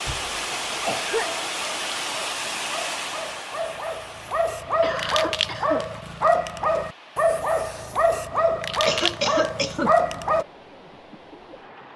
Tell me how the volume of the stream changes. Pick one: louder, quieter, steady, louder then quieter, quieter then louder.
quieter.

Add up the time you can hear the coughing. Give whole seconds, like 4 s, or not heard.
4 s.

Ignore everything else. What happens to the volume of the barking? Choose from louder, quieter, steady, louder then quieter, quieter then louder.
louder.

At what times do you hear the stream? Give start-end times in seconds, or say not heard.
0.0-11.9.